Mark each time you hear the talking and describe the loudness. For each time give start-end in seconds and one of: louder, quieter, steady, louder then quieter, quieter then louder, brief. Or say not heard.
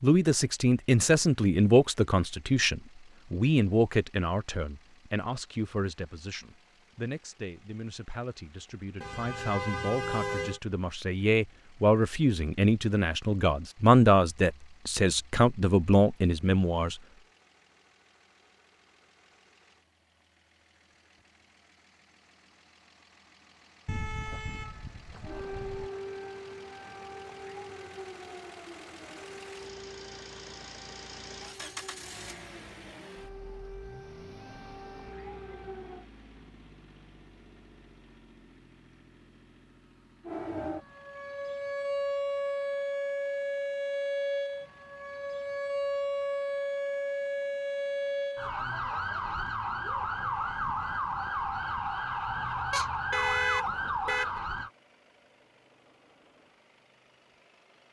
0.0-16.9 quieter then louder.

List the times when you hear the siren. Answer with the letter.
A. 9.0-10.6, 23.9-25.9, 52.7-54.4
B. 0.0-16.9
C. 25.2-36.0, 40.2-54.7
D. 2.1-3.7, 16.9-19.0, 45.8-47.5
C.